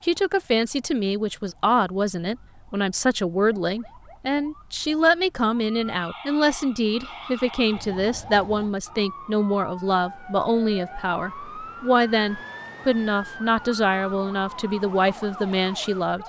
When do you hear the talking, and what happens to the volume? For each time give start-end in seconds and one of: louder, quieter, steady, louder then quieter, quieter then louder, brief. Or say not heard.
0.0-16.2 steady.